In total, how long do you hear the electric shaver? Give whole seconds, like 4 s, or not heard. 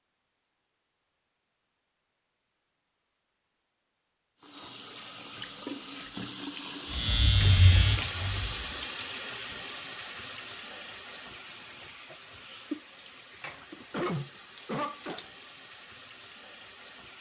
2 s.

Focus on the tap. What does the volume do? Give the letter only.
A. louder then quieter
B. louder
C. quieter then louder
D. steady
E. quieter
E.